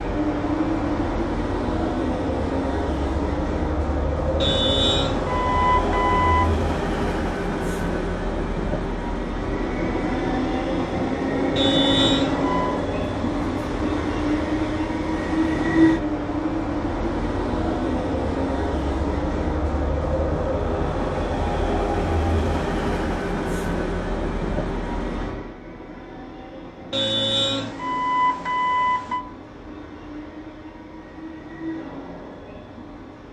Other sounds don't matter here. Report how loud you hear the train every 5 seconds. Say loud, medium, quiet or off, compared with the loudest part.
loud, loud, loud, loud, loud, quiet, quiet.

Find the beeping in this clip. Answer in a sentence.
You can hear the beeping from 4.4 to 6.6 s, from 11.6 to 12.8 s and from 26.9 to 29.2 s.